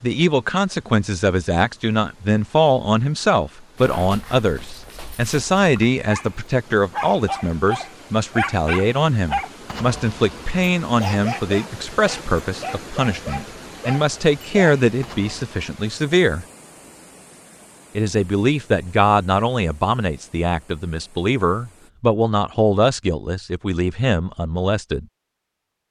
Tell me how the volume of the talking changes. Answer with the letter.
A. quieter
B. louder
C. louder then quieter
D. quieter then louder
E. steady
E.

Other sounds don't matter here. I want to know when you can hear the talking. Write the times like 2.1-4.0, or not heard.
0.0-16.4, 17.9-25.1.